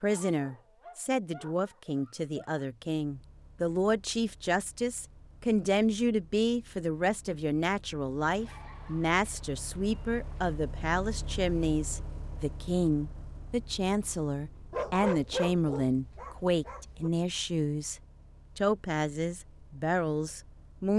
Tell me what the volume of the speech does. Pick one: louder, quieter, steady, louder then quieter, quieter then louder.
steady.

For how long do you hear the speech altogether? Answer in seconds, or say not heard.
21 s.